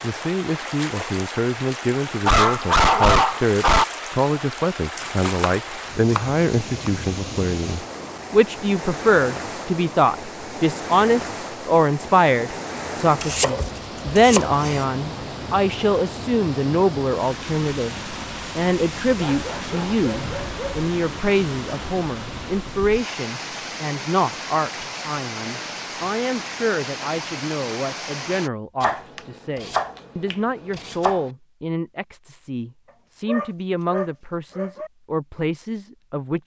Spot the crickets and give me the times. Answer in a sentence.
You can't hear the crickets here.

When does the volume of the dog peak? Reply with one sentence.
The loudest moment of the dog is at 3 seconds.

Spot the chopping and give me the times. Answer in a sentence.
The chopping can be heard from 5.0 to 6.9 s, from 13.2 to 14.8 s and from 28.8 to 31.3 s.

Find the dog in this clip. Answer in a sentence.
The dog can be heard from 2.2 to 3.9 s, from 19.1 to 20.9 s and from 33.2 to 34.9 s.